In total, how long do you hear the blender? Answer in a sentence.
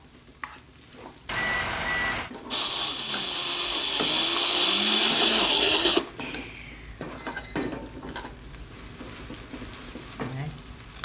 The blender can be heard for 4 seconds in total.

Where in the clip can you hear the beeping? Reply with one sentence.
You can hear the beeping from 1.2 to 2.3 s and from 6.2 to 8.2 s.